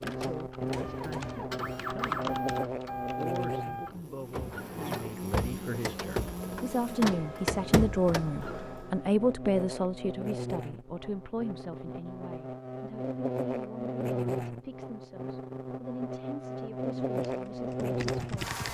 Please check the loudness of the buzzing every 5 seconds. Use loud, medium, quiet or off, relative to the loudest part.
loud, medium, loud, loud.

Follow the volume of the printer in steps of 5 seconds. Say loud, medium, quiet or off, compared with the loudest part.
loud, loud, off, off.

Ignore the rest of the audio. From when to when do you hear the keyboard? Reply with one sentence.
You can hear the keyboard from 0.0 to 3.5 s and from 17.1 to 18.6 s.